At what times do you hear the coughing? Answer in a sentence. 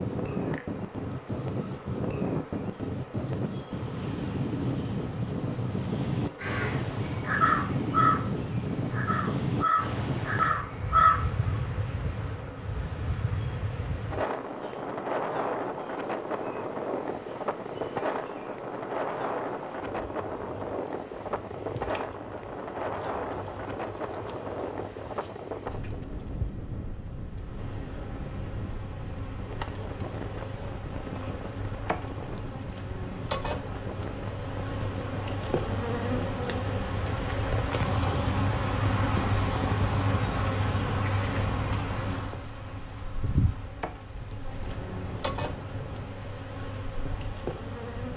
The coughing can't be heard in this clip.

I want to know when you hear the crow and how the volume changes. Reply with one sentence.
The crow can be heard from 6.4 to 11.6 s, getting quieter then louder.